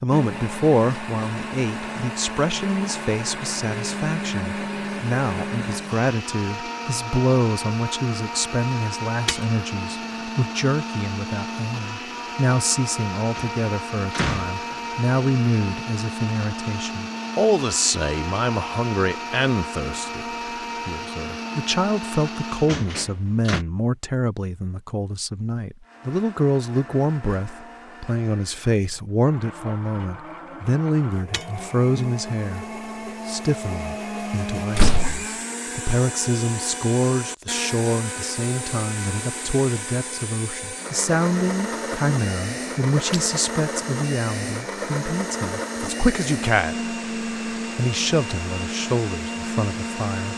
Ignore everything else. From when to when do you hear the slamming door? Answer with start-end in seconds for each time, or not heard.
13.3-14.8, 22.6-23.6, 34.8-35.2.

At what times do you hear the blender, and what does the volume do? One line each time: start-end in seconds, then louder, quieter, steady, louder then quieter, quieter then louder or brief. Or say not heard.
0.0-22.8 steady
25.8-50.3 louder.